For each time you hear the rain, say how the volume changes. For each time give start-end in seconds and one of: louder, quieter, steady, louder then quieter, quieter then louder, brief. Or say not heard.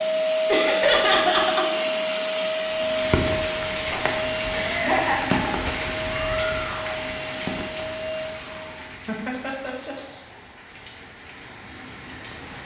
2.7-12.6 quieter.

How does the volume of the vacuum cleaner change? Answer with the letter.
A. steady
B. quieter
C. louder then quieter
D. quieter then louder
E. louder
B.